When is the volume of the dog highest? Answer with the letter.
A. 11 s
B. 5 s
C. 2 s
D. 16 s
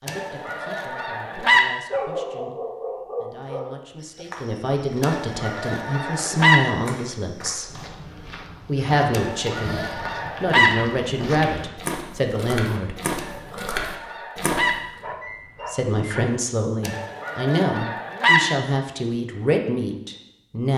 C.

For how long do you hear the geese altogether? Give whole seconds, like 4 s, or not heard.
8 s.